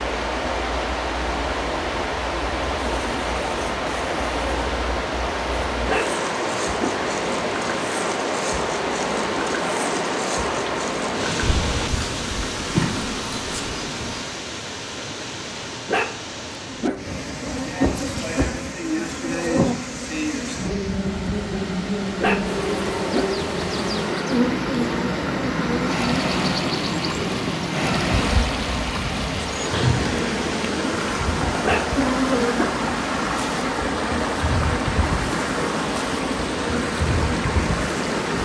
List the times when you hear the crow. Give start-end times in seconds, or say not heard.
not heard.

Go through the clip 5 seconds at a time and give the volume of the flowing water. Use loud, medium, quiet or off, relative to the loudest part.
loud, loud, loud, medium, medium, loud, loud, loud.